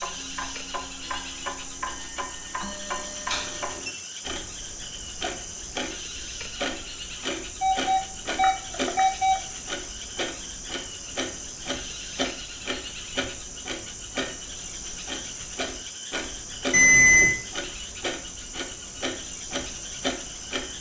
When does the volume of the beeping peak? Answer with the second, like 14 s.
17 s.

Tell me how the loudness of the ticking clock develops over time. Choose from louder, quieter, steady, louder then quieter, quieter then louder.
steady.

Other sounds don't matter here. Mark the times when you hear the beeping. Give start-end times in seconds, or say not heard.
3.3-4.0, 7.6-9.4, 16.7-17.4.